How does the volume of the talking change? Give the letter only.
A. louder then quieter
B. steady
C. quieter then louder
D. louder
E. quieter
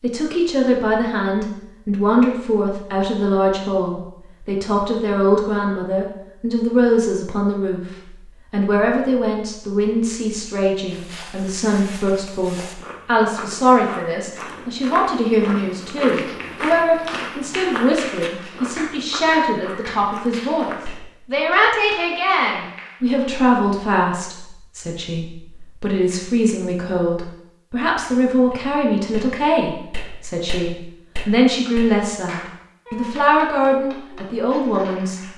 B.